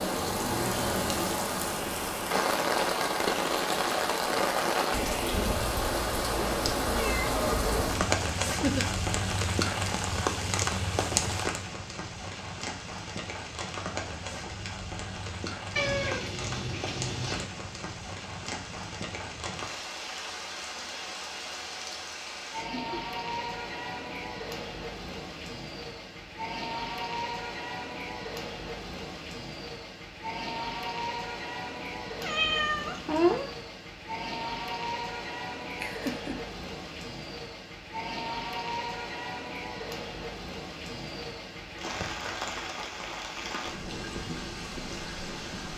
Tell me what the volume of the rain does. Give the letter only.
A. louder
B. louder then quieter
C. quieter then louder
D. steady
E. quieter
E.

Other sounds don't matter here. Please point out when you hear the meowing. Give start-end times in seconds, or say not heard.
6.5-8.1, 15.8-17.4, 32.2-33.5.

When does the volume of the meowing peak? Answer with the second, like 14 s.
33 s.